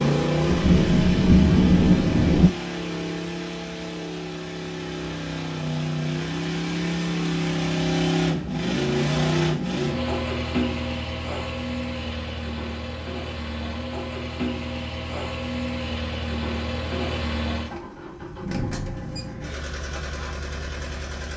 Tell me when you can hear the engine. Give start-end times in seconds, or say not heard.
0.0-21.3.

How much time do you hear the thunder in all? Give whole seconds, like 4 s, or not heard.
2 s.